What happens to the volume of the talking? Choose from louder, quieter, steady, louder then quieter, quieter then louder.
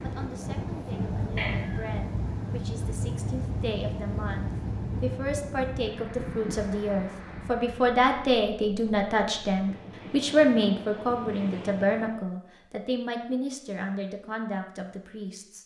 louder then quieter.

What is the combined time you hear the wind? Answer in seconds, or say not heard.
12 s.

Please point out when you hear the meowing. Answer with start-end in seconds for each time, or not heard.
1.4-1.9.